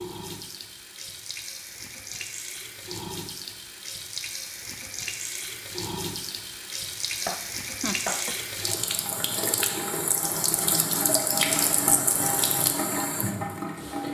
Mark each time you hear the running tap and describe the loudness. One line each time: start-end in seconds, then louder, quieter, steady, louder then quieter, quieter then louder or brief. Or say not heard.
0.0-14.0 louder.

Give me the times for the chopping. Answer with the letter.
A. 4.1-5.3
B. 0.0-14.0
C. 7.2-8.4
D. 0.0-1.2
C.